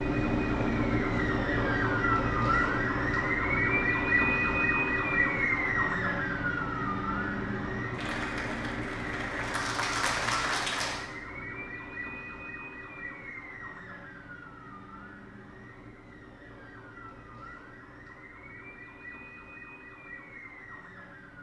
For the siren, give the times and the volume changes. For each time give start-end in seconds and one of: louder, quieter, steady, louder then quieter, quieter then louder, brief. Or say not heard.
0.0-21.3 quieter.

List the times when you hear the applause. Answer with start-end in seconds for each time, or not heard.
7.9-11.1.